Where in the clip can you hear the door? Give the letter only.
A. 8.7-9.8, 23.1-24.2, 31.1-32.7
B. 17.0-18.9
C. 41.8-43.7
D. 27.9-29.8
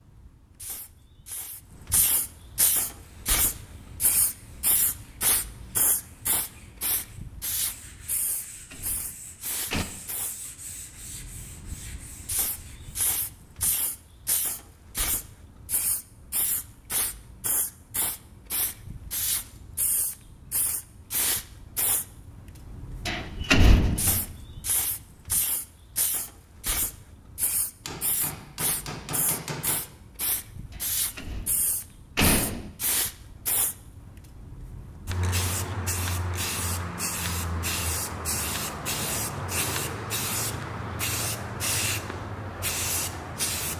A.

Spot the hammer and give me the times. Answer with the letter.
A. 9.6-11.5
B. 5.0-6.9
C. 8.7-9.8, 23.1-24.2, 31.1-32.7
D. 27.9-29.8
D.